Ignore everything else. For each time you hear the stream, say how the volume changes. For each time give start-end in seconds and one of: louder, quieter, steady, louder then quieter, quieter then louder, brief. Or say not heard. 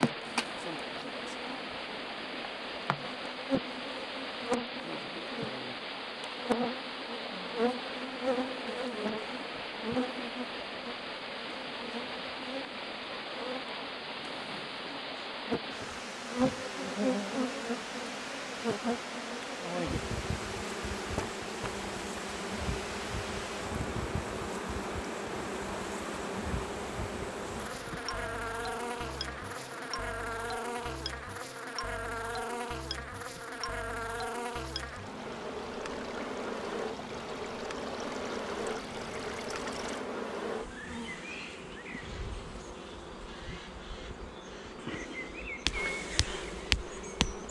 0.0-40.0 quieter.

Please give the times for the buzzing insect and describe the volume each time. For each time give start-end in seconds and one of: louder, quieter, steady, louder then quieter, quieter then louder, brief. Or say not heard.
0.0-47.4 steady.